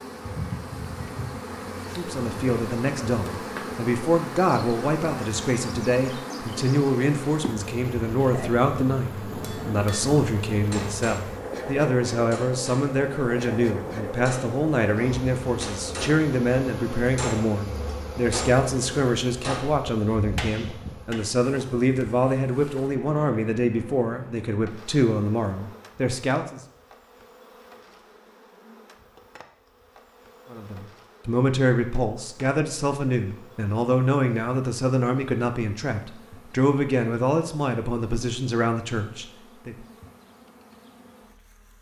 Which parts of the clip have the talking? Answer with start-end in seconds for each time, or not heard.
1.9-26.6, 30.5-39.9.